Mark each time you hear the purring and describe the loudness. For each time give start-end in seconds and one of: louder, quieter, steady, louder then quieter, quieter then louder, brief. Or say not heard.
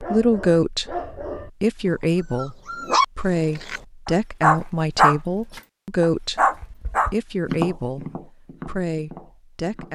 not heard.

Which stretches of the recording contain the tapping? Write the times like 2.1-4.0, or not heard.
6.4-9.9.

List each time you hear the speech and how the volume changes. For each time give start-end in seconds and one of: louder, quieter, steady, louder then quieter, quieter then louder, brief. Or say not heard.
0.0-9.9 quieter.